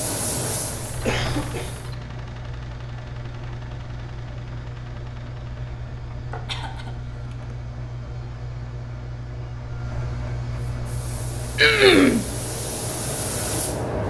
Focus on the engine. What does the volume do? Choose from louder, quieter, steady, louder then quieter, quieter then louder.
steady.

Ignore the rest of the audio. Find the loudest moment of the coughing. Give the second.
12 s.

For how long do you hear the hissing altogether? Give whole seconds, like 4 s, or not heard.
5 s.